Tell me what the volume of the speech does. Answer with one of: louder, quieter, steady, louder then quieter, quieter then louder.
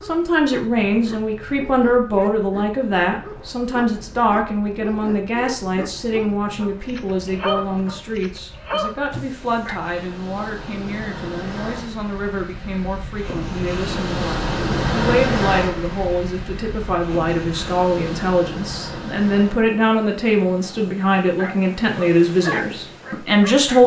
quieter then louder.